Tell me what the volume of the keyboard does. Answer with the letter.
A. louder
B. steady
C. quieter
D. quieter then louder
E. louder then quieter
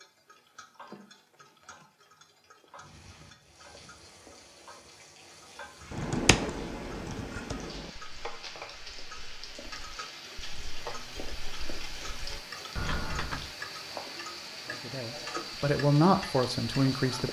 D.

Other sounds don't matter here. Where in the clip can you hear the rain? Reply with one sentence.
You can hear the rain from 2.7 to 17.2 s.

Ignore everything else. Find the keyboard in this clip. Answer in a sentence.
The keyboard can be heard from 5.9 to 13.5 s.